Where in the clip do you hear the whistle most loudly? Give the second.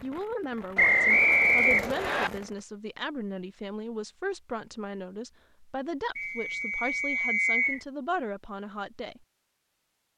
1 s.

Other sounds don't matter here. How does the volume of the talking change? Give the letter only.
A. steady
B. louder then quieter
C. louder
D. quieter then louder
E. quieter
A.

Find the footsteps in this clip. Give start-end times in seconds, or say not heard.
not heard.